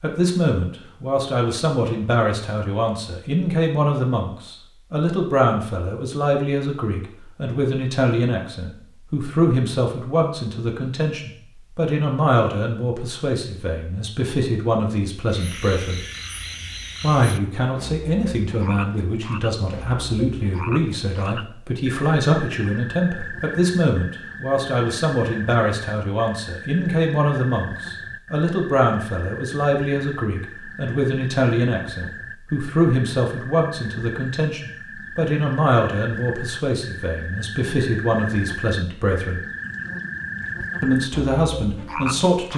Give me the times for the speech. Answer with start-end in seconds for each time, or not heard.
0.0-16.0, 17.0-39.4, 40.8-42.5.